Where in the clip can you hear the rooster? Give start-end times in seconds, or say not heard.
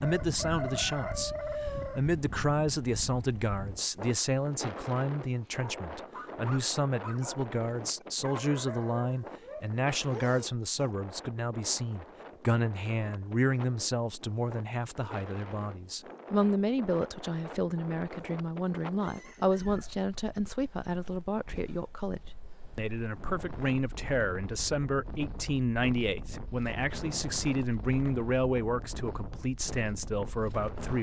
0.0-2.0, 18.9-19.9.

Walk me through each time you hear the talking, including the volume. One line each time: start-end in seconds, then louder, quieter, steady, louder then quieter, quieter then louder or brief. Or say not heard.
0.0-30.9 steady.